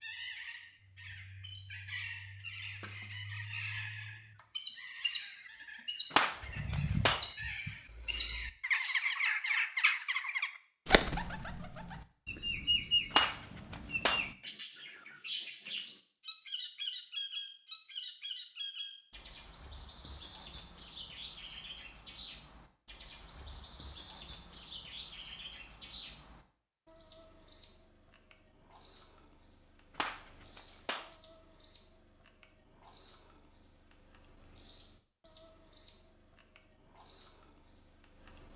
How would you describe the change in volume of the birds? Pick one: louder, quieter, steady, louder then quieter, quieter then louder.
louder then quieter.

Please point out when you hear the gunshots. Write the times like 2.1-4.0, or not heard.
6.1-7.2, 13.1-14.2, 29.9-31.1.